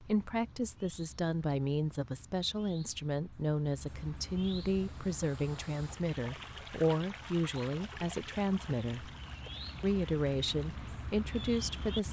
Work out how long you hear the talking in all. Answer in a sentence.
You can hear the talking for 11 seconds altogether.